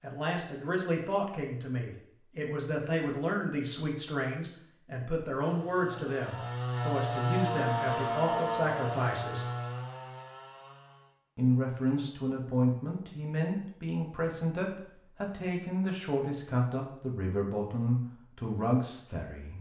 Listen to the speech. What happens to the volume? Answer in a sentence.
The loudness of the speech stays about the same.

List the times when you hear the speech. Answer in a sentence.
You can hear the speech from 0.0 to 9.4 s and from 11.3 to 19.5 s.